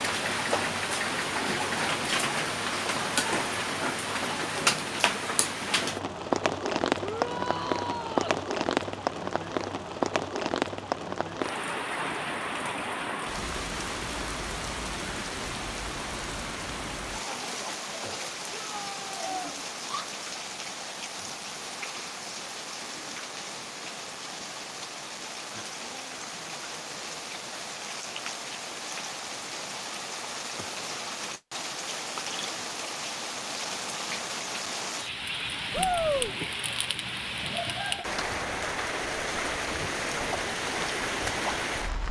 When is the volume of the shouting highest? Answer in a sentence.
The loudest moment of the shouting is at 36 seconds.